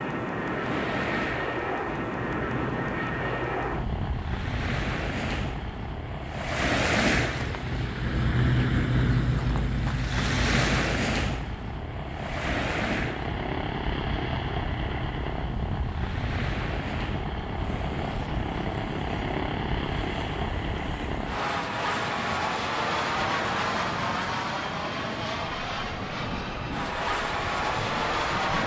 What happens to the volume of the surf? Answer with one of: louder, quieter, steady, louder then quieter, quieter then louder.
louder then quieter.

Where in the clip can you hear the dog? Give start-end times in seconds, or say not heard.
not heard.